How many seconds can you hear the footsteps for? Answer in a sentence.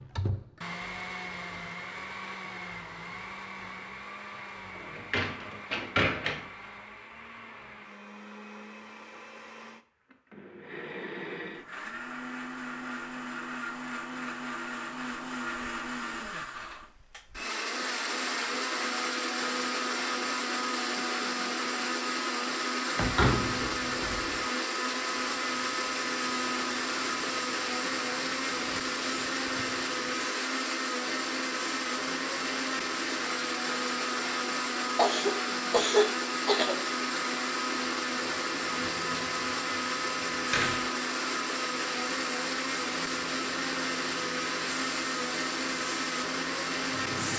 You can't hear the footsteps here.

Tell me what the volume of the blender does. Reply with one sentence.
The loudness of the blender goes up.